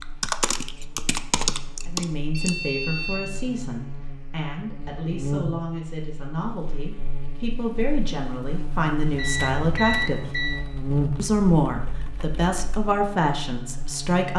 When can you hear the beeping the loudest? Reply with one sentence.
The volume of the beeping peaks at 10 seconds.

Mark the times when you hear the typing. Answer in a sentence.
You can hear the typing from 0.0 to 2.5 s and from 9.2 to 12.8 s.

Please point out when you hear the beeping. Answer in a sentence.
You can hear the beeping from 2.2 to 3.3 s and from 9.1 to 10.7 s.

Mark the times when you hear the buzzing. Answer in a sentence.
You can hear the buzzing from 0.0 to 14.3 s.